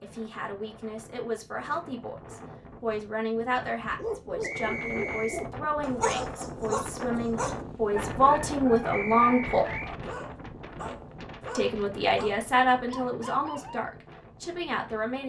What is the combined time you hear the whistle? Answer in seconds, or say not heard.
2 s.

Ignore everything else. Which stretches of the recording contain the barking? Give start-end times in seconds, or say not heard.
3.8-13.8.